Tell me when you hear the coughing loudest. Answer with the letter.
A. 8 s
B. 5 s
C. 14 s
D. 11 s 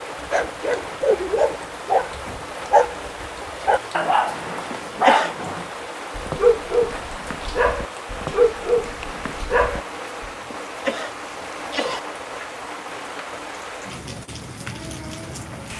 B.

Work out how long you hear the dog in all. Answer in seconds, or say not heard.
10 s.